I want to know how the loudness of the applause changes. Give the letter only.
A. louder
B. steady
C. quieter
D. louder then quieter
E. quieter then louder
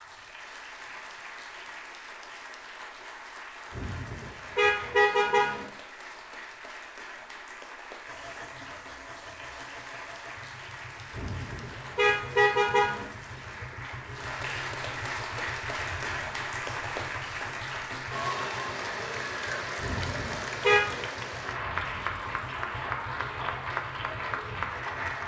A.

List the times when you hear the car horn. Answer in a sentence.
You can hear the car horn from 3.7 to 5.7 s, from 11.2 to 13.1 s and from 19.8 to 21.1 s.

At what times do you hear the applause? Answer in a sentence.
You can hear the applause from 0.0 to 25.2 s.